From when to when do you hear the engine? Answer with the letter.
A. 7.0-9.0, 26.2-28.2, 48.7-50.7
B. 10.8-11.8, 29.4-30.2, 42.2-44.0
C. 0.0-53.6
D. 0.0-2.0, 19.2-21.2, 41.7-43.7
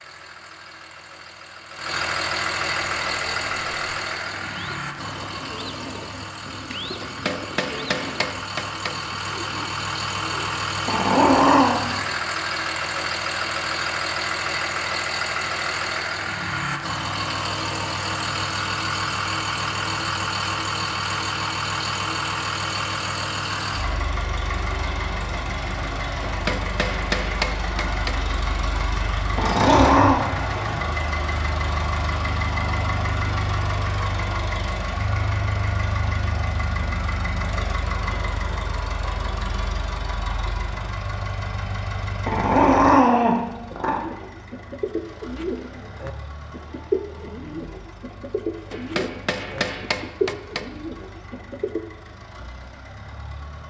C.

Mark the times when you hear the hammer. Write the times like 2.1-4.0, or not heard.
7.0-9.0, 26.2-28.2, 48.7-50.7.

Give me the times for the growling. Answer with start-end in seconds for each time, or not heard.
10.8-11.8, 29.4-30.2, 42.2-44.0.